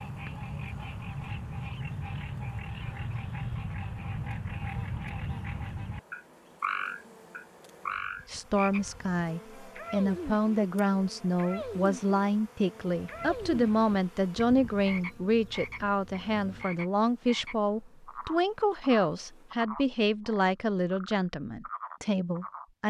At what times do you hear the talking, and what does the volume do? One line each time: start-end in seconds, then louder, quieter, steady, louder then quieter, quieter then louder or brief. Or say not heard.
8.2-22.8 steady.